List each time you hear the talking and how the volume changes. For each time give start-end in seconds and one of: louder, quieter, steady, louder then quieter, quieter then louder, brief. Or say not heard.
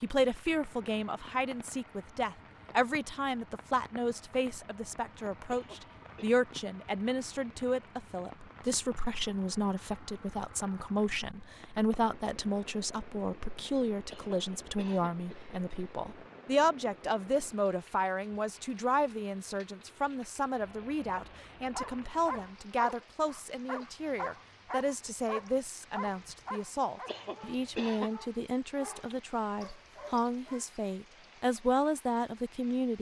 0.0-32.9 steady.